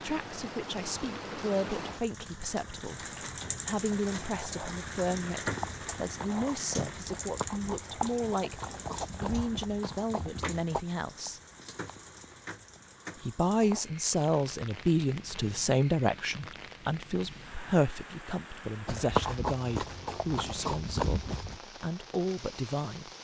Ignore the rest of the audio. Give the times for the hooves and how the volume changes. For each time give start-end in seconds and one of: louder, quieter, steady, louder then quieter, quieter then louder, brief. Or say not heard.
5.4-10.8 louder
18.9-21.6 brief.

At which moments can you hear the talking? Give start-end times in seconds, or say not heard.
0.0-3.0, 3.6-11.4, 13.2-23.1.